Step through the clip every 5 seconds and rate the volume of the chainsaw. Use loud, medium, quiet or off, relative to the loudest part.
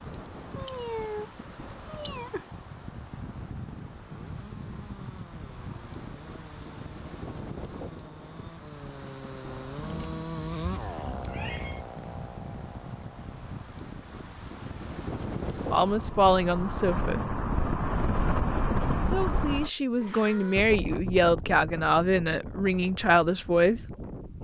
quiet, medium, loud, off, off.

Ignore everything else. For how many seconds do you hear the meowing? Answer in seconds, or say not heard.
5 s.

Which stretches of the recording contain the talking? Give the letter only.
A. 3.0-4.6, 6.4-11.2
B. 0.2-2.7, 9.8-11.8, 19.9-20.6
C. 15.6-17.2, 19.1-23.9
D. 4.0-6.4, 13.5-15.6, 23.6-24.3
C.